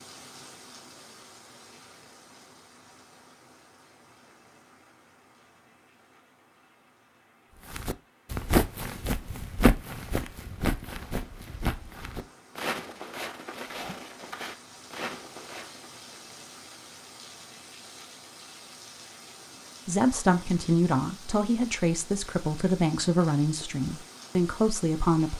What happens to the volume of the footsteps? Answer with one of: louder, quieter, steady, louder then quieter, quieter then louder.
quieter.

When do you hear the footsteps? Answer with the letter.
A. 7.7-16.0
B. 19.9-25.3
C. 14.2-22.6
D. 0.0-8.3
A.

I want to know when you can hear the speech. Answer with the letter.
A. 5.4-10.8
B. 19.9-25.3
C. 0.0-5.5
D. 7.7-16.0
B.